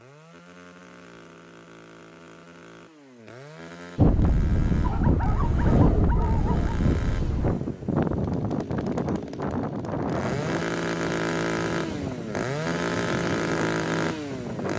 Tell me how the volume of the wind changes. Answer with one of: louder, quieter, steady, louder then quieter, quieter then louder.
quieter.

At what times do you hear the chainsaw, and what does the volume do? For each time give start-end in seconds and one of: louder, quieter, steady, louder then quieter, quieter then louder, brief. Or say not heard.
0.0-14.7 louder.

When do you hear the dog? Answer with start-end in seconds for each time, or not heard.
4.8-6.8.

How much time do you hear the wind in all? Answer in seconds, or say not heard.
11 s.